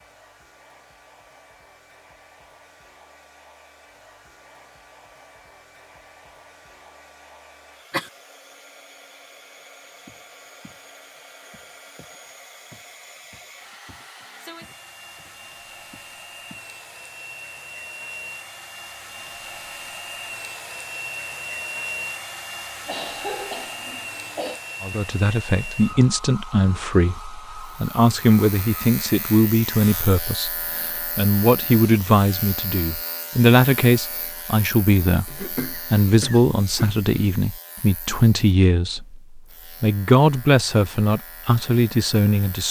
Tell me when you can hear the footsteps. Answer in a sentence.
You can hear the footsteps from 10.1 to 10.8 s and from 11.5 to 16.7 s.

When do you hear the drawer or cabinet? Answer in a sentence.
You can't hear the drawer or cabinet here.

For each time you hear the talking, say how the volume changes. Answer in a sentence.
You can hear the talking from 24.8 to 42.6 s, at a steady volume.